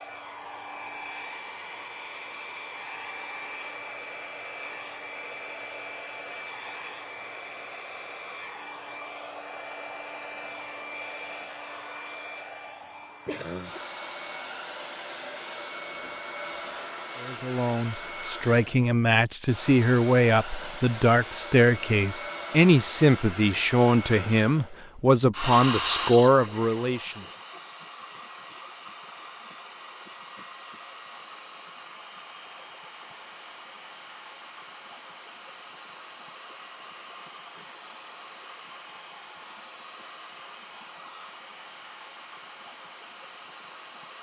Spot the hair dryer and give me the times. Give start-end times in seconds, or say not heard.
0.0-44.1.